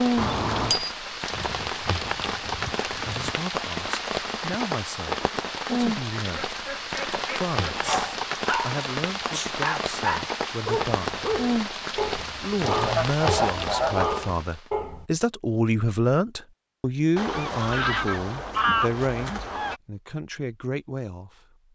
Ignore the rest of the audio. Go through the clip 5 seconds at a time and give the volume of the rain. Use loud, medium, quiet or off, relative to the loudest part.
loud, loud, loud, off, off.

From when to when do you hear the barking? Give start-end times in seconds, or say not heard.
7.8-15.1.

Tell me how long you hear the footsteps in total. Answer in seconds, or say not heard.
not heard.